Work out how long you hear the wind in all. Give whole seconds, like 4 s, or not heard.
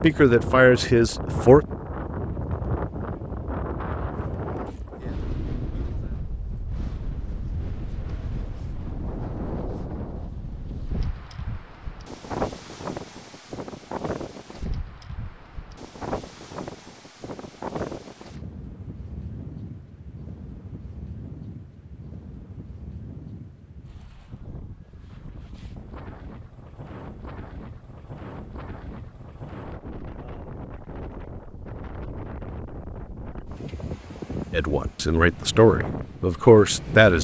37 s.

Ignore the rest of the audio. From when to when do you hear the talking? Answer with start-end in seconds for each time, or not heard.
0.0-1.6, 34.5-37.1.